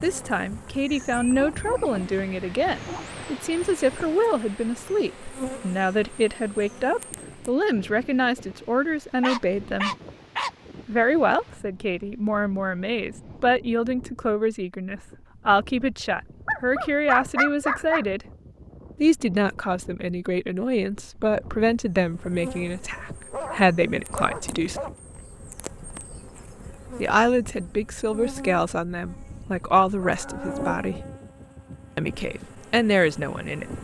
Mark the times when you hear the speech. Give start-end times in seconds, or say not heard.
0.0-9.9, 10.8-18.2, 19.0-24.8, 26.9-31.0, 31.9-33.7.